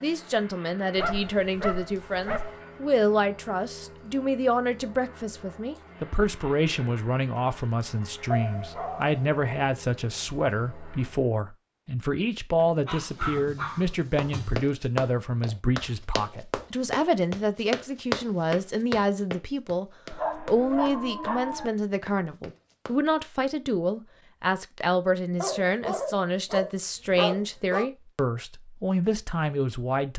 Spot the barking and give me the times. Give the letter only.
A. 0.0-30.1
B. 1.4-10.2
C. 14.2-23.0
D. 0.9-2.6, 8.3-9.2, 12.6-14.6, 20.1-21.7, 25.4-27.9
D.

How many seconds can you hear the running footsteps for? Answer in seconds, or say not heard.
9 s.